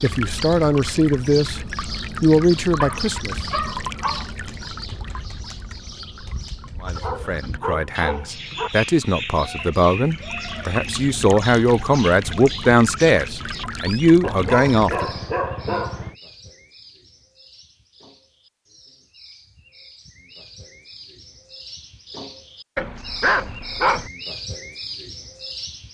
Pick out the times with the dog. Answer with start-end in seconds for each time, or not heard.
2.8-4.2, 6.8-8.7, 14.2-16.1, 22.8-24.1.